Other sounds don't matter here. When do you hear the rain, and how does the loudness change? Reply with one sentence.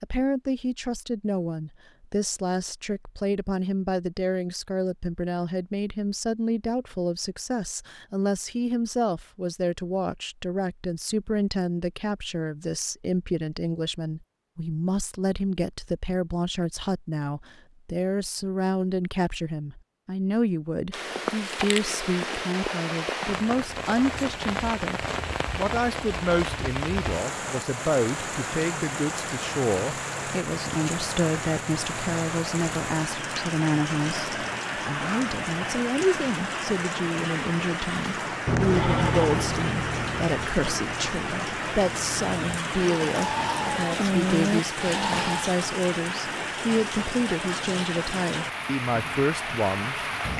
The rain can be heard from 20.9 to 50.3 s, at a steady volume.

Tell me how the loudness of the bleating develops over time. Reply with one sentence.
The volume of the bleating goes down, then up.